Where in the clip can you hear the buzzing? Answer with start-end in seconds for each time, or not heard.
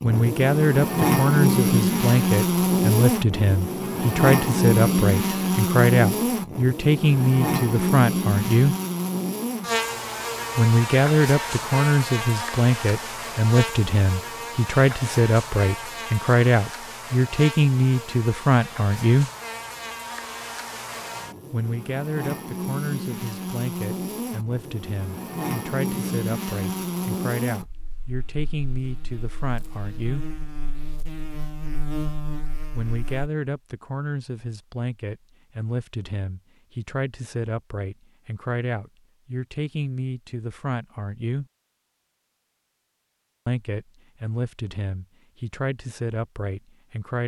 0.0-33.3.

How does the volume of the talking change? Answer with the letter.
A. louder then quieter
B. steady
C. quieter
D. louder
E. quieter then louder
C.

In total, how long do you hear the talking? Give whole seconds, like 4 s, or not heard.
39 s.